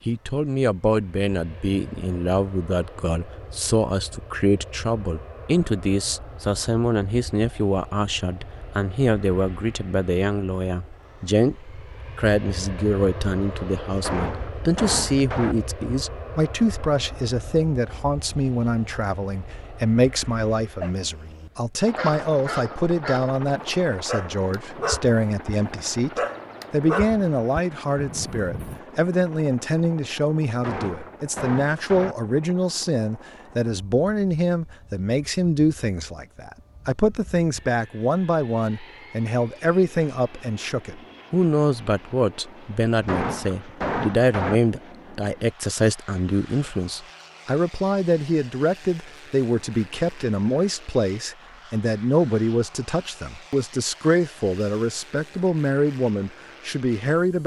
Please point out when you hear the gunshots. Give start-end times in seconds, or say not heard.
14.0-15.6, 30.6-32.1, 43.0-44.6.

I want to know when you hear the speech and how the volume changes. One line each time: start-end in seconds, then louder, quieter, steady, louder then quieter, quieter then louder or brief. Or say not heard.
0.1-57.4 steady.